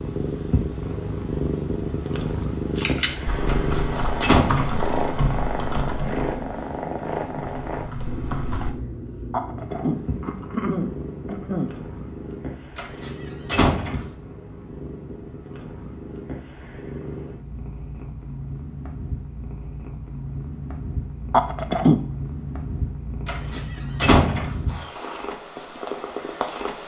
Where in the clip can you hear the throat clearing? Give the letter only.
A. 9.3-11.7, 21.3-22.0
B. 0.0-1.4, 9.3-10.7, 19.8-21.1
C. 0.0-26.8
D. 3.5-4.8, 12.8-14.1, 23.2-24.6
A.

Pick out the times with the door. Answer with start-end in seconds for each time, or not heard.
3.5-4.8, 12.8-14.1, 23.2-24.6.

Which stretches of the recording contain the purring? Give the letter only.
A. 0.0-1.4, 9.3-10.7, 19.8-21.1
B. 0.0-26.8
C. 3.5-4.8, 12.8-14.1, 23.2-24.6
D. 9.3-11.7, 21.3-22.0
B.